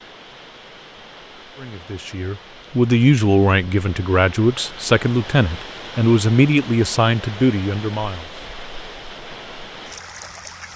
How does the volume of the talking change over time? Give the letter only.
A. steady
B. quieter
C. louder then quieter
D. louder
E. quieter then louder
A.